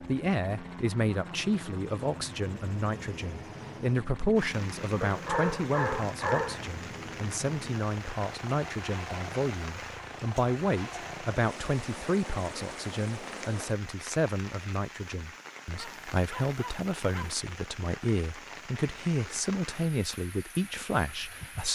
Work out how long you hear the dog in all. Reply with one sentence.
You can hear the dog for 3 seconds altogether.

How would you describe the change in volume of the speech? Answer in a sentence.
The loudness of the speech stays about the same.